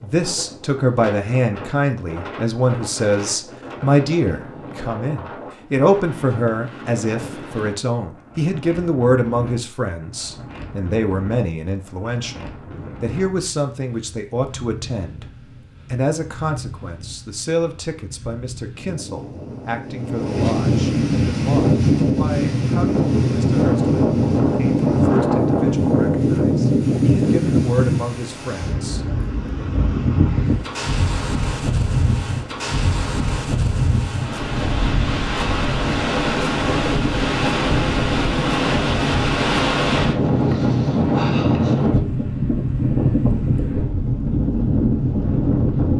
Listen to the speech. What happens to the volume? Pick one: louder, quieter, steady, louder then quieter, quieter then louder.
quieter.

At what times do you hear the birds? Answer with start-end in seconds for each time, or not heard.
not heard.